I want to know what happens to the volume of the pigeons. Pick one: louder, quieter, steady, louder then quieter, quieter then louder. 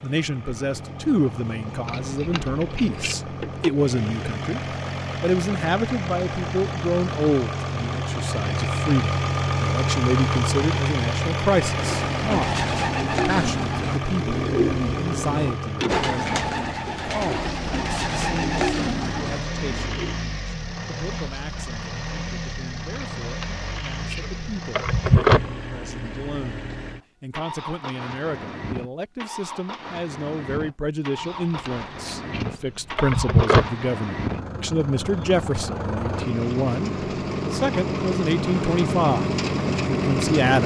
steady.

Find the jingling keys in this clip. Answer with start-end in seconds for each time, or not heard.
1.9-3.1, 22.9-25.5, 31.1-33.7.